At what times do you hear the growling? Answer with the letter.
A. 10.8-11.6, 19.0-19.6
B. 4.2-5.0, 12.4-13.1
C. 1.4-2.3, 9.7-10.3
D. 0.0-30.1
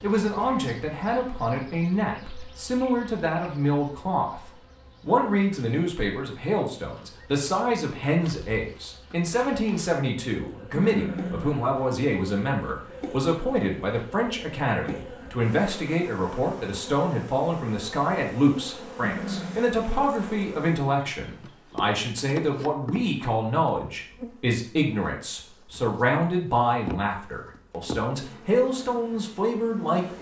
A.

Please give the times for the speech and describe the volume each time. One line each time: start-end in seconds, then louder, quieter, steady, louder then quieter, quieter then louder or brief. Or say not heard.
0.0-30.1 steady.